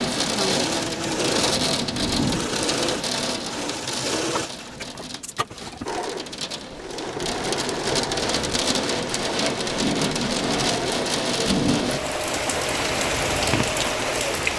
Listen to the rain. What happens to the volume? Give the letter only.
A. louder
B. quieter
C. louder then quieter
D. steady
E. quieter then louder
E.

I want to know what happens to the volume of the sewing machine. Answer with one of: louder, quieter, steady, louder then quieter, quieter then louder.
steady.